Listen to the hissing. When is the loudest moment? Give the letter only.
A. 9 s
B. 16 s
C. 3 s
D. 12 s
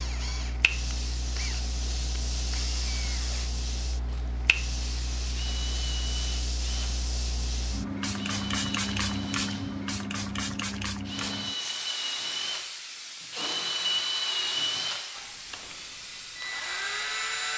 A.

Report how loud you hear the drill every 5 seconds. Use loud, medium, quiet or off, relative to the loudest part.
medium, medium, loud, loud.